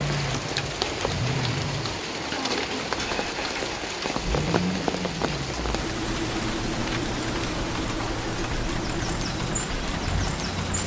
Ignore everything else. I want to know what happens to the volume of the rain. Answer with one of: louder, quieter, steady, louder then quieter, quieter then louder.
steady.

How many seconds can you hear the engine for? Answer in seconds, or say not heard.
11 s.